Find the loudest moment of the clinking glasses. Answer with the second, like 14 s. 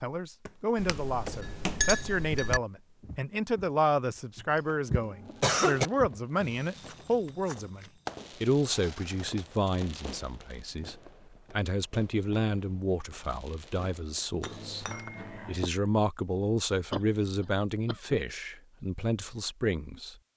2 s.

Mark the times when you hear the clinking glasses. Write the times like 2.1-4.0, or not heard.
0.8-2.6, 14.4-15.7.